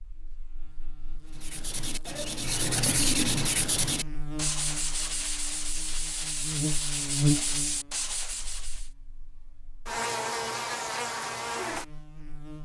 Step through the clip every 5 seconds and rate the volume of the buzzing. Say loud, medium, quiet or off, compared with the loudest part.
medium, loud, loud.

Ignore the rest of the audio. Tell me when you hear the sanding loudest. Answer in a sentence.
The volume of the sanding peaks at 3 seconds.